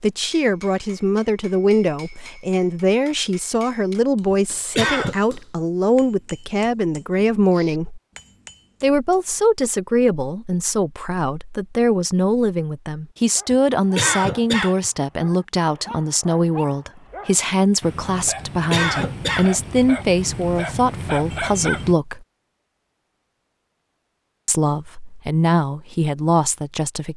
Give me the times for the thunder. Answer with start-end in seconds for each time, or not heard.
not heard.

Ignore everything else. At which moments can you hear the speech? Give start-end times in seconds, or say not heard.
0.0-8.0, 8.8-22.2, 24.4-27.1.